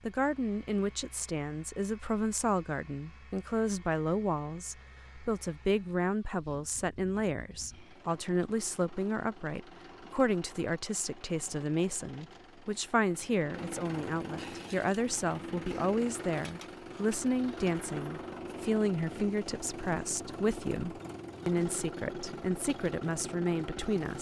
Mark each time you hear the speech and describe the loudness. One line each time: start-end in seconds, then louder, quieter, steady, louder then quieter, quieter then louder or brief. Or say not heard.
0.0-24.1 steady.